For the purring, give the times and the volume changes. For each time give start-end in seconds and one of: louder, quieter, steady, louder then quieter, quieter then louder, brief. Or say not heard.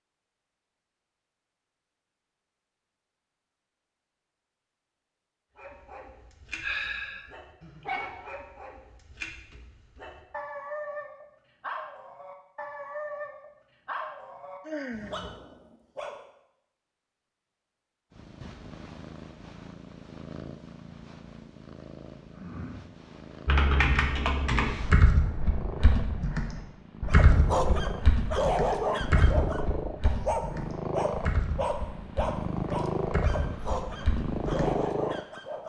18.1-35.6 louder.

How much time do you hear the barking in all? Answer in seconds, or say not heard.
19 s.